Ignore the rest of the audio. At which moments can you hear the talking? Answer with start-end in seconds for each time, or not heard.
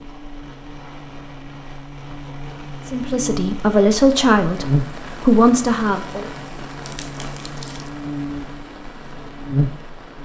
2.9-6.2.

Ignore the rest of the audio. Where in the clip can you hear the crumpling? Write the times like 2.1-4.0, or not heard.
6.8-7.9.